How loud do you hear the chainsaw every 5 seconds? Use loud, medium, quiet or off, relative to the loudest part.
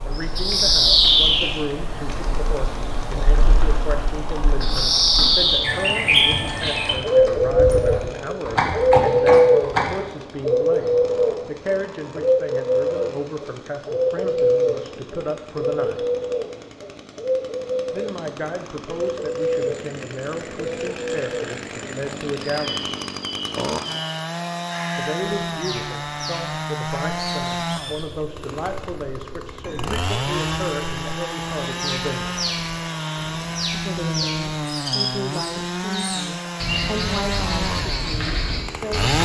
quiet, quiet, quiet, quiet, loud, loud, loud, loud.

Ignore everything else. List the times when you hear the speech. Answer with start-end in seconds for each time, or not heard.
0.0-16.0, 17.9-22.9, 24.9-32.4, 33.7-39.1.